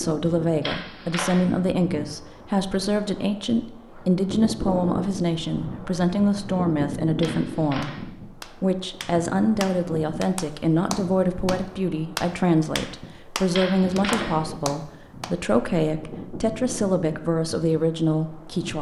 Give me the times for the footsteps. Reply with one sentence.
You can't hear the footsteps here.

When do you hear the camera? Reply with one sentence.
The camera can be heard from 0.6 to 1.4 s, from 7.2 to 8.0 s and from 13.5 to 14.3 s.